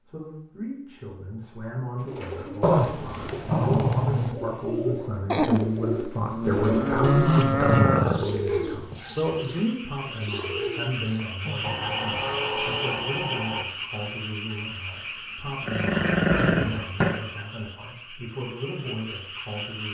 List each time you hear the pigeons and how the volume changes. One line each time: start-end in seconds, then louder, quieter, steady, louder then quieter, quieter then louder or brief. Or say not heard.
1.9-11.2 louder then quieter.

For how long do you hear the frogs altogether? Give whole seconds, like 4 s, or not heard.
11 s.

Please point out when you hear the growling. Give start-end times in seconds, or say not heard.
2.6-4.3, 7.0-8.2, 15.7-17.2.